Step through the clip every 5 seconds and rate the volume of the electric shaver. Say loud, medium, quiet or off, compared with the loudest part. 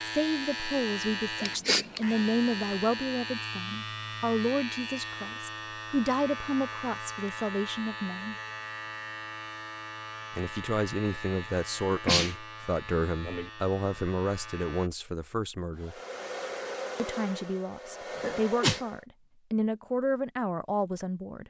loud, loud, medium, off, off.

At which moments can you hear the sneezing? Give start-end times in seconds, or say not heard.
1.4-2.2, 11.9-12.3, 18.1-18.8.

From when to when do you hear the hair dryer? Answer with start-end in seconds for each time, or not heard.
15.8-19.1.